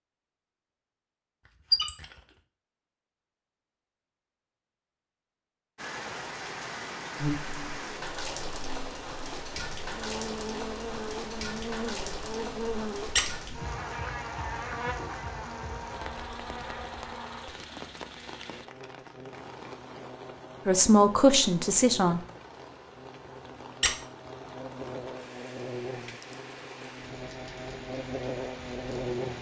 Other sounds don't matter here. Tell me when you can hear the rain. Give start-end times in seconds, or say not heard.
5.8-29.3.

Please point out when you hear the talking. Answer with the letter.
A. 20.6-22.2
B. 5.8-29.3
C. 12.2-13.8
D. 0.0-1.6
A.